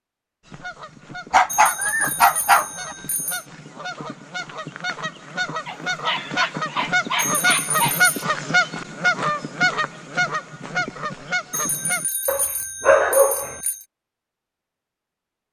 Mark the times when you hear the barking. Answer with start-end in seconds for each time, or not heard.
1.3-3.0, 5.7-8.0, 12.2-13.6.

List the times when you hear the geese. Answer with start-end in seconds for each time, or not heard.
0.5-12.1.